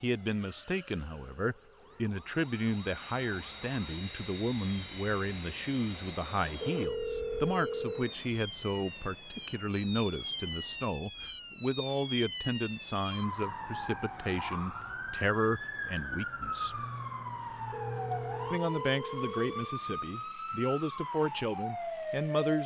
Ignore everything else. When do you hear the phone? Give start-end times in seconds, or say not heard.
6.6-8.2, 17.7-19.8.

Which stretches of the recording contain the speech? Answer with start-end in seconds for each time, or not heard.
0.0-16.9, 18.5-22.6.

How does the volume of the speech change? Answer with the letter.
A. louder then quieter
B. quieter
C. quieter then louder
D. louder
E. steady
E.